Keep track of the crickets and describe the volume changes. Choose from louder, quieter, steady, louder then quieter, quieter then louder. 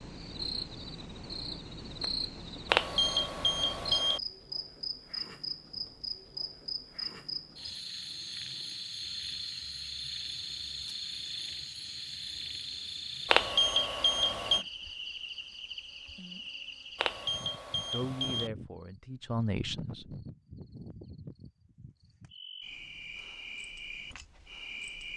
quieter.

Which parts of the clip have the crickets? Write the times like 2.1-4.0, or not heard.
0.0-25.1.